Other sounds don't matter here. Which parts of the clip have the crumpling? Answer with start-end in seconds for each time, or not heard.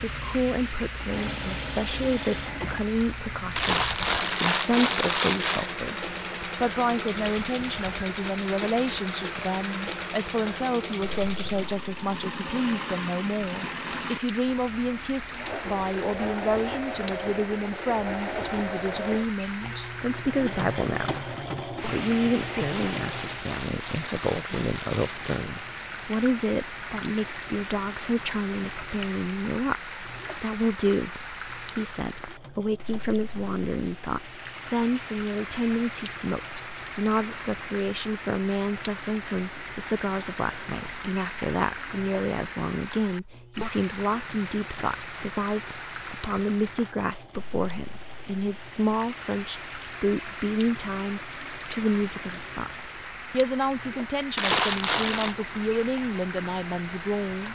3.5-5.7, 22.6-25.2, 54.4-55.4.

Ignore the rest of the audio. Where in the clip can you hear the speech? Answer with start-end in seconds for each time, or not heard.
0.0-21.2, 21.9-57.4.